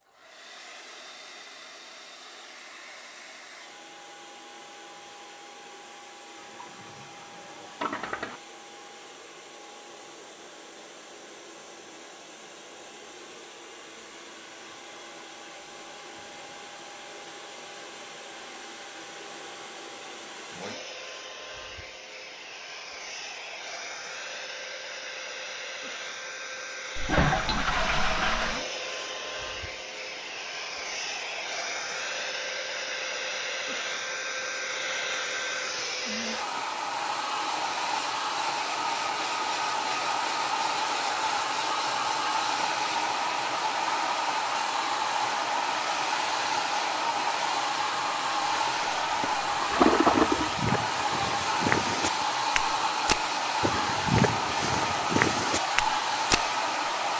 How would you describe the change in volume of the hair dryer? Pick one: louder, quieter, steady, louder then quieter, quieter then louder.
louder.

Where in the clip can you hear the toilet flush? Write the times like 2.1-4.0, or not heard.
6.3-8.4, 26.9-28.6, 49.7-50.5.